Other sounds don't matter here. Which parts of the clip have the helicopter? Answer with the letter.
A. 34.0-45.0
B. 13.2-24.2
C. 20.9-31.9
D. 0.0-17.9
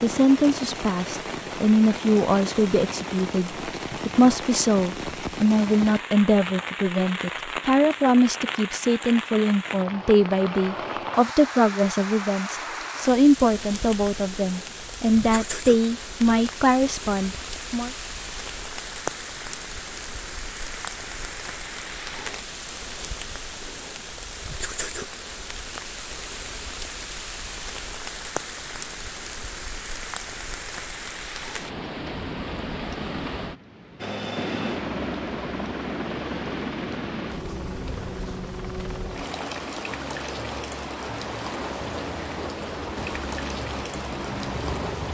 A.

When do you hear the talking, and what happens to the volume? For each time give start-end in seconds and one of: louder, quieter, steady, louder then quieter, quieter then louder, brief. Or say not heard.
0.0-17.9 steady.